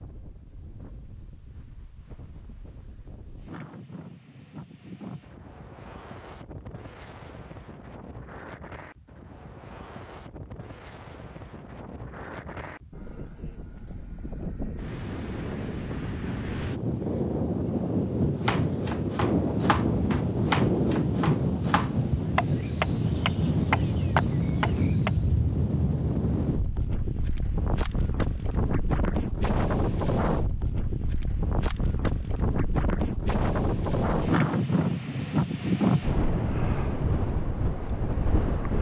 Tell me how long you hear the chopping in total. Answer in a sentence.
The chopping can be heard for 7 seconds in total.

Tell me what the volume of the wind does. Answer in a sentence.
The volume of the wind goes up.